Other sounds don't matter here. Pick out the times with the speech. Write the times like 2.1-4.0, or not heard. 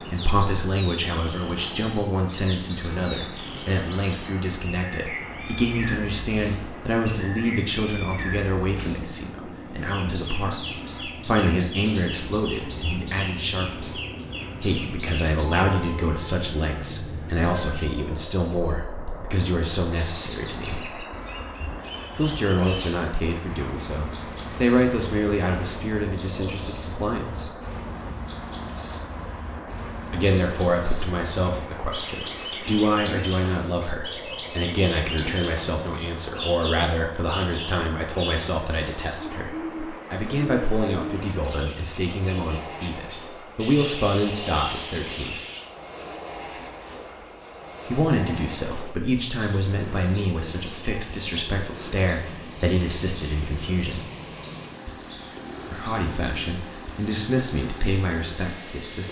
0.1-14.0, 14.6-20.9, 22.1-27.5, 30.1-45.4, 47.9-54.0, 55.7-59.0.